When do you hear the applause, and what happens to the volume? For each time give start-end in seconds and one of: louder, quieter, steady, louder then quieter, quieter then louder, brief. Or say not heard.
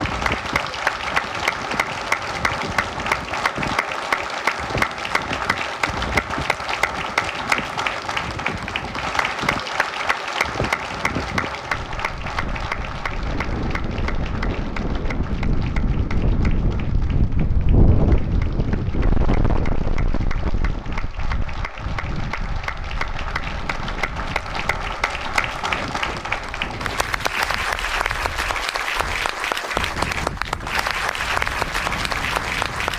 0.0-32.9 quieter then louder.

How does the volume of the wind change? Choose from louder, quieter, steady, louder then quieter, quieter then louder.
louder then quieter.